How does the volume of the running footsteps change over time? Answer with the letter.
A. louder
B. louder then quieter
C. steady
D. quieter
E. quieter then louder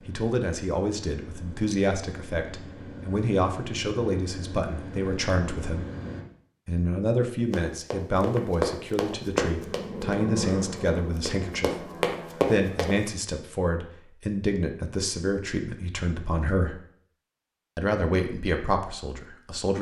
E.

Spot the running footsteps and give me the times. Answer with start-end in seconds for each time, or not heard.
7.5-12.9.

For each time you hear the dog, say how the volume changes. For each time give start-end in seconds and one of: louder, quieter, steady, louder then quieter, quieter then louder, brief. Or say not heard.
not heard.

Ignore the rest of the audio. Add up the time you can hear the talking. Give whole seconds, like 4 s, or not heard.
17 s.